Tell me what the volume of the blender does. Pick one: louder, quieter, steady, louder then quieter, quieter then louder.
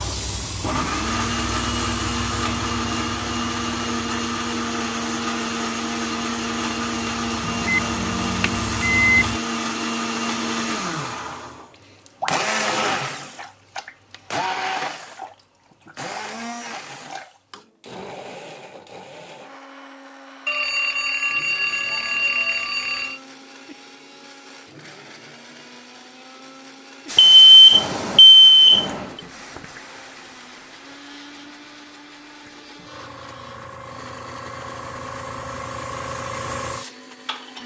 quieter.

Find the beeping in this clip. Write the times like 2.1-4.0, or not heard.
7.5-9.2, 20.4-23.2, 27.1-29.1.